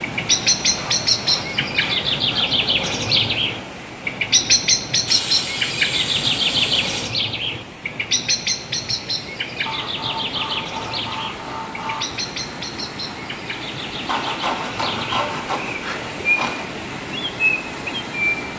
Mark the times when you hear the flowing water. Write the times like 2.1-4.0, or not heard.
0.0-18.5.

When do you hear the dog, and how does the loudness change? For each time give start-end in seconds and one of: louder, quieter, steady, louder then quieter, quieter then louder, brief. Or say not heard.
not heard.